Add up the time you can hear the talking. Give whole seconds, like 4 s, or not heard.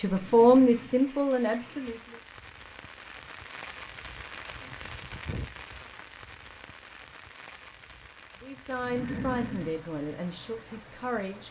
5 s.